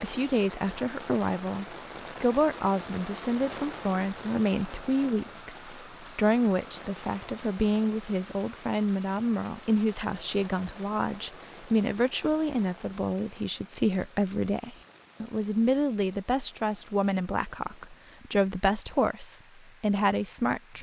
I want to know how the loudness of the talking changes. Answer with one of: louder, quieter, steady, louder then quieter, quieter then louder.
steady.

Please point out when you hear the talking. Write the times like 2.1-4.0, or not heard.
0.0-20.7.